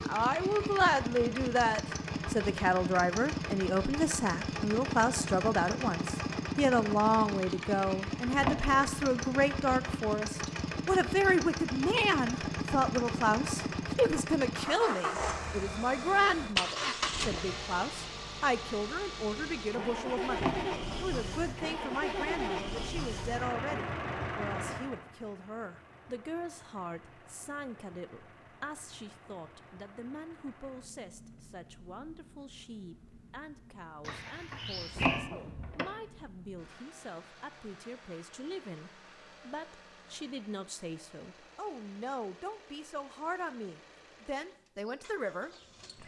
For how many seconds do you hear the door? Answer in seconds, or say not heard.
2 s.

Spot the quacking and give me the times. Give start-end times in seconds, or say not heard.
not heard.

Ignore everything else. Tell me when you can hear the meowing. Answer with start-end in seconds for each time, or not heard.
34.0-35.3.